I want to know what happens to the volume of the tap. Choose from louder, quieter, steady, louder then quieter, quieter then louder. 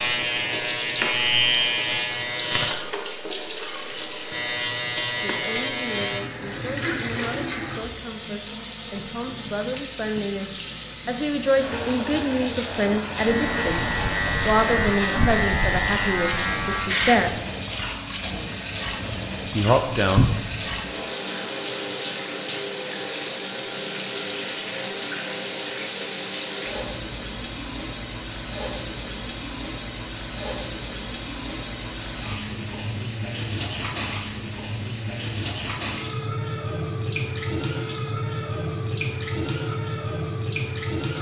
steady.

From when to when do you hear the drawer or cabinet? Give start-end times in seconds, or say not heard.
20.1-20.6.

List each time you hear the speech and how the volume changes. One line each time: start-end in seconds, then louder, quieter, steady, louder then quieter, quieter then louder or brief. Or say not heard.
5.2-17.4 louder
19.5-20.2 brief.